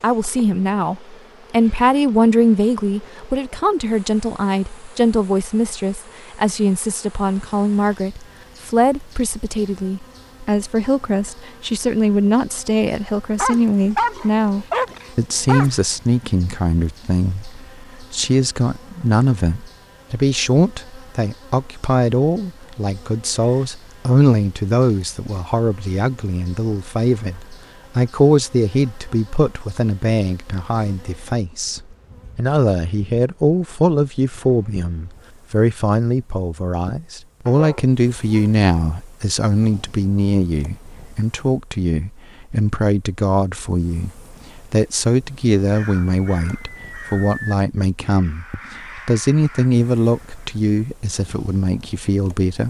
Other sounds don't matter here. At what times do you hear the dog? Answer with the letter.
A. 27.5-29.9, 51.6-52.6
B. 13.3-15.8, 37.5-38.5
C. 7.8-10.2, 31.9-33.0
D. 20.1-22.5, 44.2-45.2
B.